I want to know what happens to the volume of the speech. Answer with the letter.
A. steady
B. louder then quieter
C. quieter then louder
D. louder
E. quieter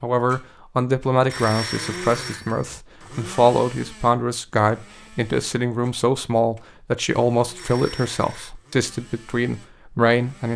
A.